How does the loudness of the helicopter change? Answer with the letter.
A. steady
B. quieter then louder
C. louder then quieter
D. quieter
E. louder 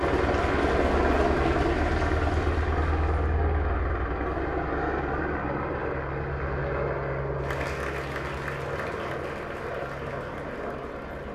D.